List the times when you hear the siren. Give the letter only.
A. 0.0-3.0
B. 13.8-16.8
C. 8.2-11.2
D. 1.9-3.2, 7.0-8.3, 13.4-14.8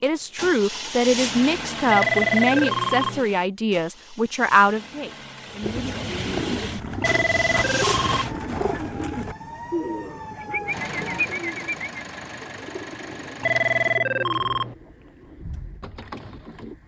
C.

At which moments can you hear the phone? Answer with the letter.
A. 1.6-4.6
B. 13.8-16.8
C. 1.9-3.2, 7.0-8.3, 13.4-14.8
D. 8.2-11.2
C.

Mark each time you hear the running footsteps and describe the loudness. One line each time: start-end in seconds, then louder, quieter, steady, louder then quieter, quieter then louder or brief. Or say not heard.
not heard.